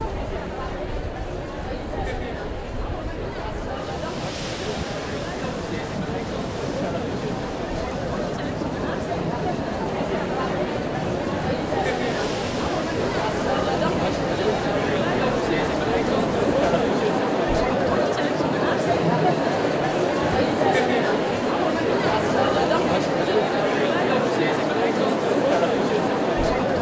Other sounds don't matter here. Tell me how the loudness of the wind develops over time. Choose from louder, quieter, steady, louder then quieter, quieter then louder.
louder.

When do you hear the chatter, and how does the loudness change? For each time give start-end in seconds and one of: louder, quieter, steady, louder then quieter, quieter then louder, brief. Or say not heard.
0.0-26.7 louder.